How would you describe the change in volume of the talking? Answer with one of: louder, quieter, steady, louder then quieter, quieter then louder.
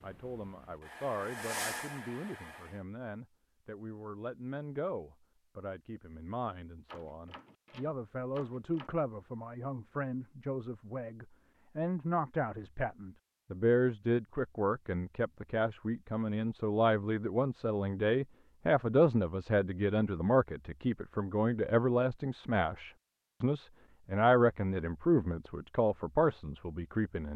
louder.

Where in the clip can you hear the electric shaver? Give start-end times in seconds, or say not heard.
not heard.